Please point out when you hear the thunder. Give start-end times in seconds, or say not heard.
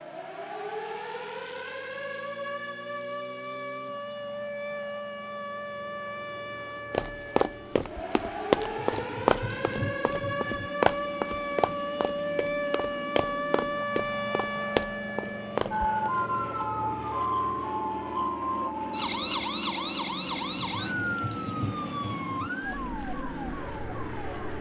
8.8-10.6, 20.6-22.5.